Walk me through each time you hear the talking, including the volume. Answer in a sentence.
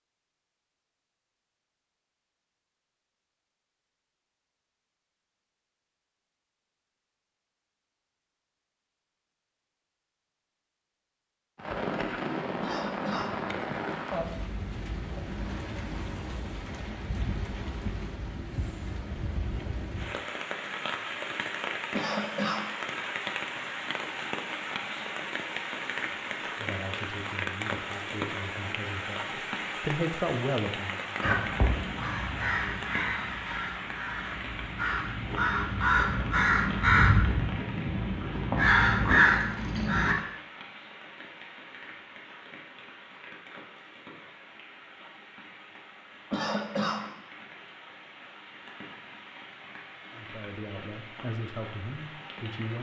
The talking can be heard from 26.6 to 31.2 s, getting louder; and briefly from 50.1 to 52.7 s.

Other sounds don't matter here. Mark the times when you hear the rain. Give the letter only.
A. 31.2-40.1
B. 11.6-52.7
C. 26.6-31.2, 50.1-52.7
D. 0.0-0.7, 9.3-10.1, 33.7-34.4
B.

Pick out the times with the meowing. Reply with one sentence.
The meowing can't be heard in this clip.